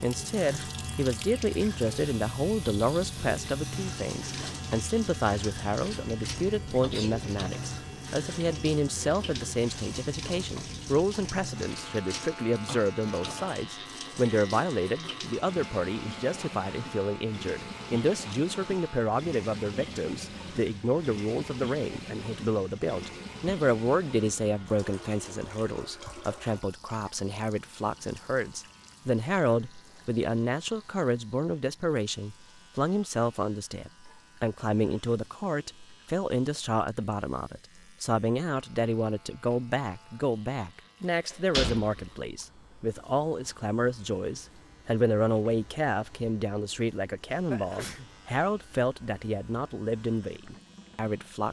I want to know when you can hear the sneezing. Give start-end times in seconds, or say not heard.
6.7-7.2, 47.5-48.1.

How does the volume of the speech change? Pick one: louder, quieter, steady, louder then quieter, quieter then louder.
steady.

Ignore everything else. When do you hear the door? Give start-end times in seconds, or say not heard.
41.3-42.1.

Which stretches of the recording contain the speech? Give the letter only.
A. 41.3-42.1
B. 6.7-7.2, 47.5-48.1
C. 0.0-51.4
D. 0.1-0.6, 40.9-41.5
C.